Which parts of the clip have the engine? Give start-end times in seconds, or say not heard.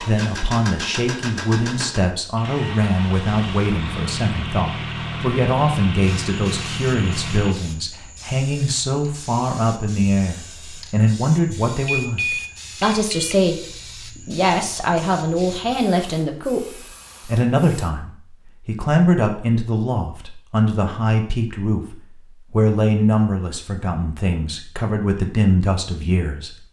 0.0-7.5.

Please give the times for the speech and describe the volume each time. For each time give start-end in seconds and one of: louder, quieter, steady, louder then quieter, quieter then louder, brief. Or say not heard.
0.0-26.6 steady.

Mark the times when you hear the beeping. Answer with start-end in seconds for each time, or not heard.
11.8-13.4.